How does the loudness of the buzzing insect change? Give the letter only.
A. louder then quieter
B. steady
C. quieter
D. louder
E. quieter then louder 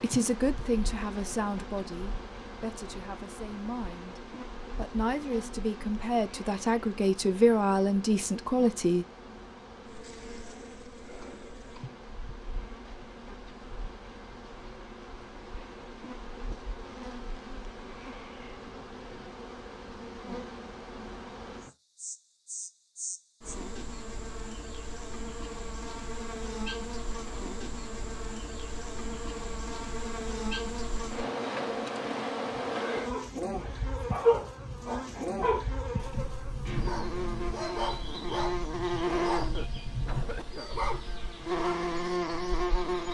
D.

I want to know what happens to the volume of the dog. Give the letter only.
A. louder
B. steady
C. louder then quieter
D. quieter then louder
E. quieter
E.